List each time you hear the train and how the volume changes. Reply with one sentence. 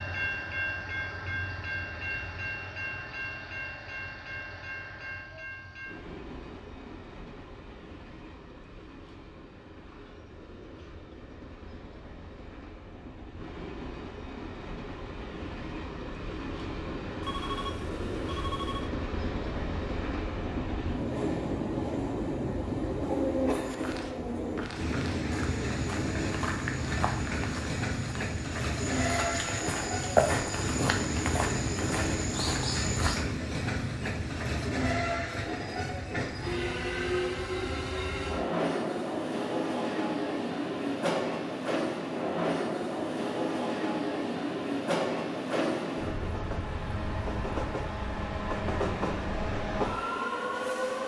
The train can be heard from 0.0 to 51.0 s, getting louder.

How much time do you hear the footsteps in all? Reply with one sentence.
The footsteps can be heard for 10 seconds in total.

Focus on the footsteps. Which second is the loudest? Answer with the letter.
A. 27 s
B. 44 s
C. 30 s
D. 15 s
C.